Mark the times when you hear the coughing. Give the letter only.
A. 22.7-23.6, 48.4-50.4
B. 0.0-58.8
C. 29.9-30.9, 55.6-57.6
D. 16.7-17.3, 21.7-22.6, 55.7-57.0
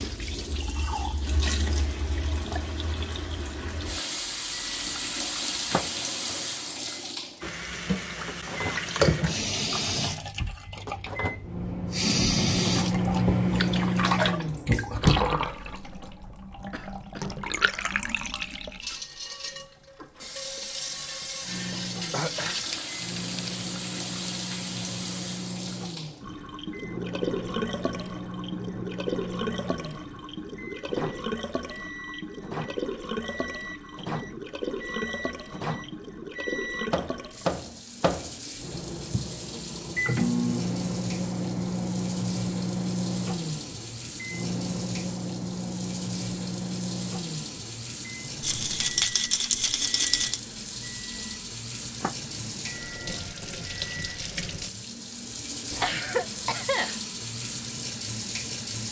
D.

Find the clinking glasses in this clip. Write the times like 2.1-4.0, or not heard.
not heard.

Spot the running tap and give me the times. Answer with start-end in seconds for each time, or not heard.
0.0-58.8.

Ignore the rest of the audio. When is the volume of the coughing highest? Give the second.
56 s.